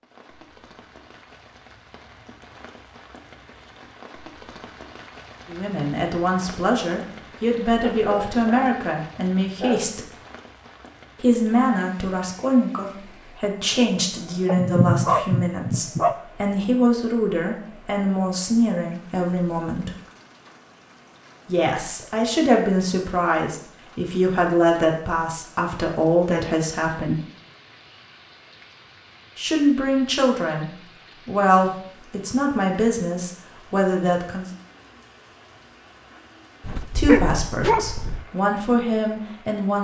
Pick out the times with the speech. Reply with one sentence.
You can hear the speech from 5.5 to 10.1 s, from 11.2 to 19.9 s, from 21.4 to 27.2 s, from 29.4 to 34.5 s and from 37.0 to 39.7 s.